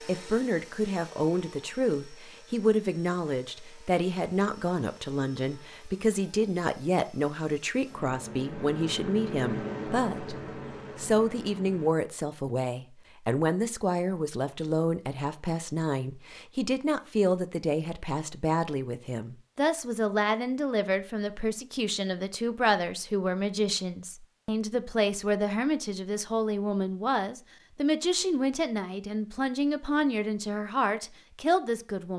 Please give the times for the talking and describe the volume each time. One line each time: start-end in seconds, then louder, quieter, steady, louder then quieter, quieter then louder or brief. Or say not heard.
0.1-10.3 steady
10.9-32.1 steady.